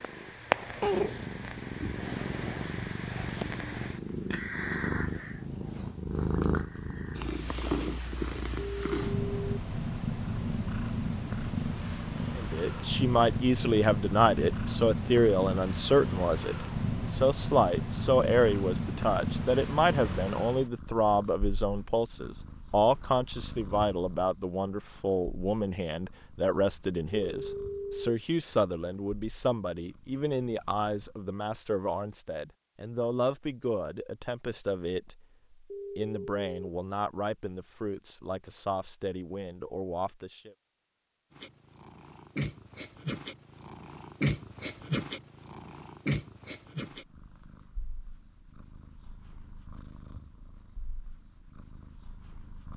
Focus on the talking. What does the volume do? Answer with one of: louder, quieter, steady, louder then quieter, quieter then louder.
quieter.